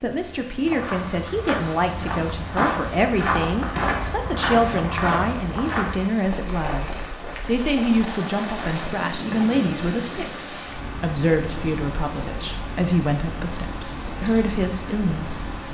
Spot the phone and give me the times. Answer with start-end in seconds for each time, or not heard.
not heard.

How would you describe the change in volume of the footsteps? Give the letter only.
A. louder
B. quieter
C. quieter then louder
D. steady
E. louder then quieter
E.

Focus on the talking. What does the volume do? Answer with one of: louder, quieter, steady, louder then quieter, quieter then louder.
steady.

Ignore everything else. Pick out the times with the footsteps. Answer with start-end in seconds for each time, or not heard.
0.6-8.1.